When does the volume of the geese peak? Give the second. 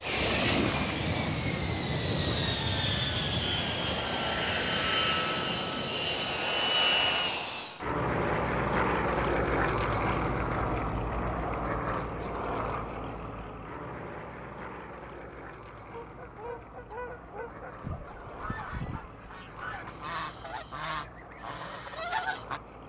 22 s.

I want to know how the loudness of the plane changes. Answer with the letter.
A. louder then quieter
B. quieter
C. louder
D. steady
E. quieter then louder
B.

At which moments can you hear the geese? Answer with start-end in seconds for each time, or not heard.
15.9-22.6.